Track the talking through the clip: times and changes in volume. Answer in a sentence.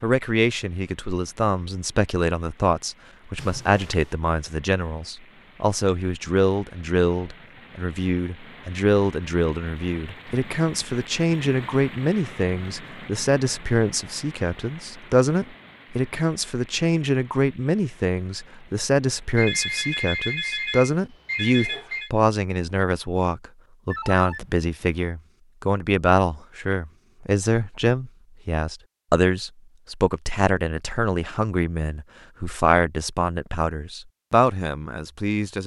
The talking can be heard from 0.0 to 35.6 s, at a steady volume.